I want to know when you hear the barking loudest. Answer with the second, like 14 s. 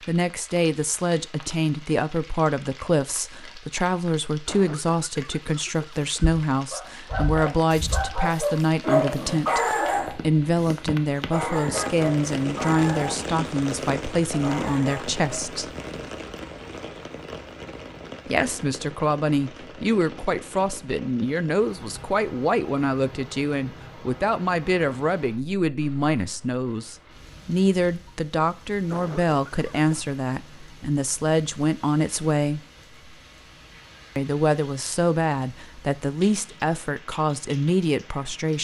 9 s.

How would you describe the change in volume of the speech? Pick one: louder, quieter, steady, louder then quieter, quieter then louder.
steady.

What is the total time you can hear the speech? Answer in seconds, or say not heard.
34 s.